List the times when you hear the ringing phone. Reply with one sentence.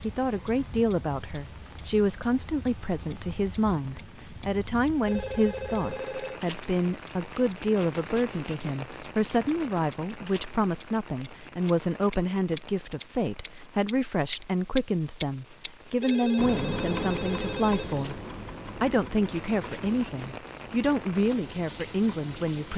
The ringing phone can be heard from 5.0 to 6.4 s and from 16.0 to 18.1 s.